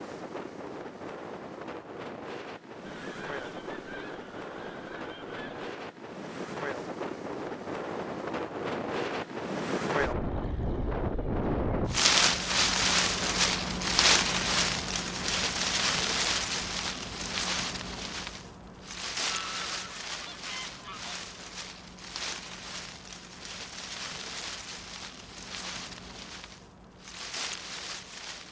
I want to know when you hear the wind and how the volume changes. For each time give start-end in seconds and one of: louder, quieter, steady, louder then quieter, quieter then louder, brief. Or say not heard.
0.0-28.4 louder then quieter.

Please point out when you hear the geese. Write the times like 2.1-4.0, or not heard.
2.8-5.8, 19.3-21.1.